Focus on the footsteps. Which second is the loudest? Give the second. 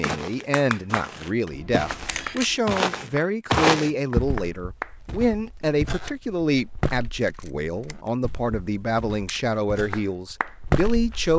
4 s.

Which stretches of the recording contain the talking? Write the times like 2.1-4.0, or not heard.
0.0-11.3.